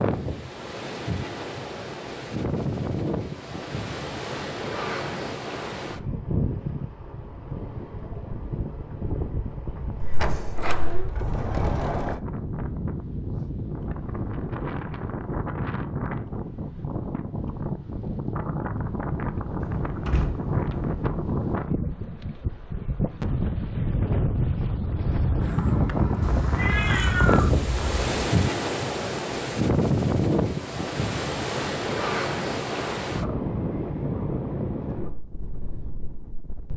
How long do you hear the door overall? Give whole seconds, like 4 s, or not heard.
3 s.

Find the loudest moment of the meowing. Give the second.
27 s.